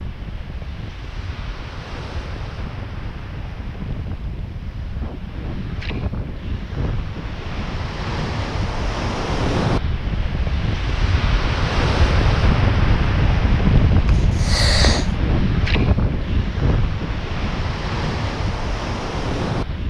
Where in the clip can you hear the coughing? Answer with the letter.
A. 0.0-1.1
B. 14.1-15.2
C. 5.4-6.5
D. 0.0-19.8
B.